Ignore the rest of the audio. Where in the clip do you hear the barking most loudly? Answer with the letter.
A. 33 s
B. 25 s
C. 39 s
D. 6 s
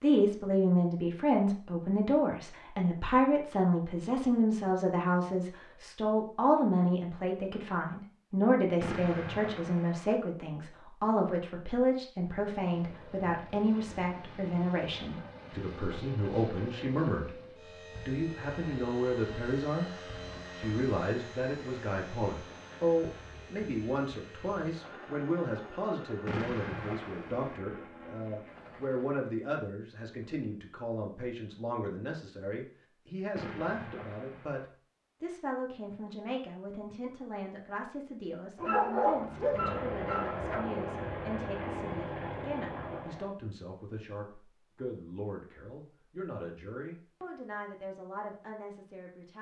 C.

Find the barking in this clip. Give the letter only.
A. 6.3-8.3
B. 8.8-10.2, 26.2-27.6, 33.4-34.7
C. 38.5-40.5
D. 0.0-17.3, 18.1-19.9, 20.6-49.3
C.